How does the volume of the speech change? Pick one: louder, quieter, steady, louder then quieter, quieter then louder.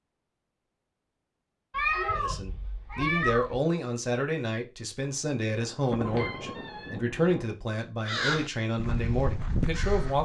steady.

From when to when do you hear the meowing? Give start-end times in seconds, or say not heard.
1.7-3.5, 6.0-7.0.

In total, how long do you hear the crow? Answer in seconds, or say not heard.
2 s.